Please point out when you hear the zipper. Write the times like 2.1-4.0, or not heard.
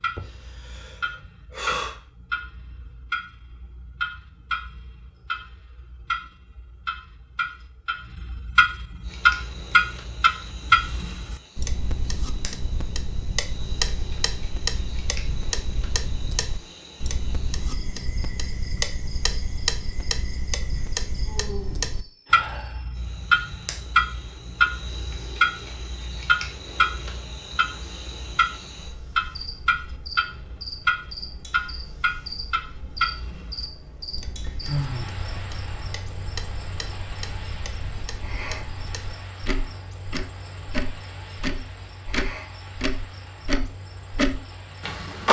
not heard.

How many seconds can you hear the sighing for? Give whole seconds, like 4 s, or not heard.
3 s.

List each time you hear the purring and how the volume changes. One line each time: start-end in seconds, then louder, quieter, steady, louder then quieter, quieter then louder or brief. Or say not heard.
not heard.